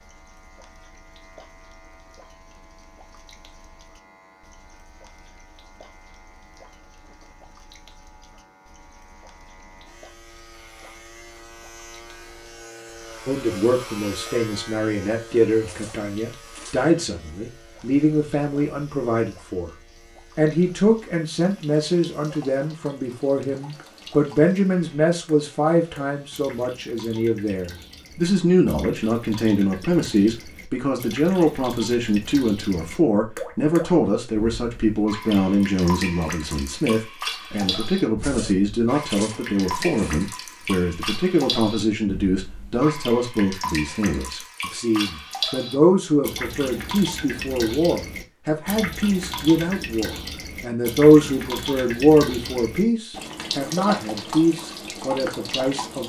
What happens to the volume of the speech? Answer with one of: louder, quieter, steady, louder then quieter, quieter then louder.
steady.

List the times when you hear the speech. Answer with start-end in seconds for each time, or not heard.
13.2-19.8, 20.4-56.0.